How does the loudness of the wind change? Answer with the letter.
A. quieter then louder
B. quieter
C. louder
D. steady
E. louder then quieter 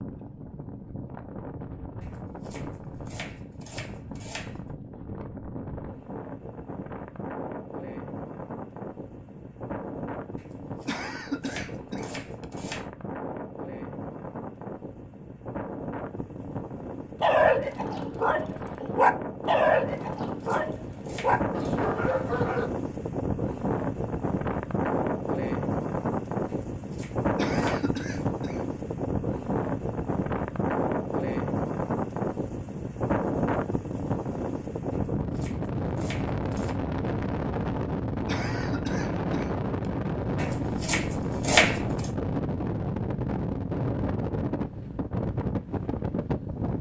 C.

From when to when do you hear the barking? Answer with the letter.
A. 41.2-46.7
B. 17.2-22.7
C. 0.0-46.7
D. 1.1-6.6
B.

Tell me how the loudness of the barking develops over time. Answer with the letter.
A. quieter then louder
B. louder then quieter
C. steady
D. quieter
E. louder
B.